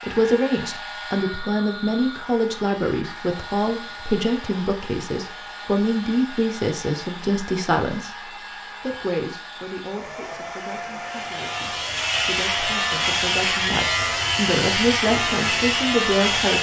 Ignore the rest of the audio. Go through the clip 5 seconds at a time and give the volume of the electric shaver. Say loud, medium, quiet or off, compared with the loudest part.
off, off, loud, loud.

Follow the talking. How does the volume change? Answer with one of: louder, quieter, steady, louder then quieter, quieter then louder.
quieter then louder.